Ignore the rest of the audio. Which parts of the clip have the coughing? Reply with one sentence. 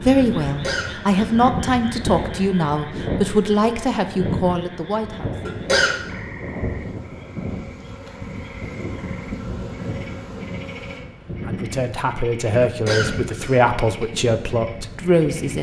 The coughing can be heard from 0.5 to 1.2 s, from 5.5 to 6.0 s and from 12.6 to 14.1 s.